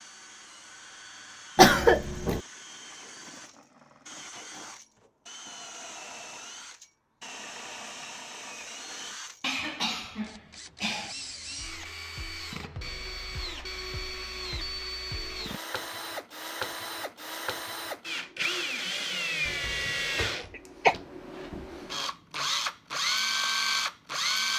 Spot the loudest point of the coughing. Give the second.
2 s.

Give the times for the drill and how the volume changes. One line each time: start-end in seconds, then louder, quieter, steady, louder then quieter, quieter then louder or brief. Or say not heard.
0.0-24.5 louder.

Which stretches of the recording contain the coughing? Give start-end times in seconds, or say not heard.
1.6-2.4, 9.4-11.2, 19.4-20.9.